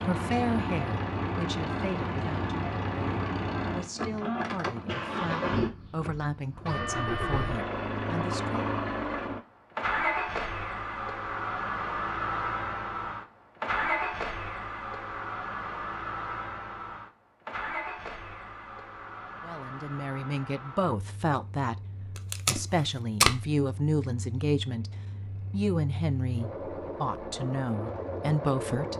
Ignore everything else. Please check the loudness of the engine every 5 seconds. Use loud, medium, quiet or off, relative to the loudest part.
loud, loud, loud, medium, quiet, medium.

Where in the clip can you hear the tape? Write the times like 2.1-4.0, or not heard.
22.1-23.4.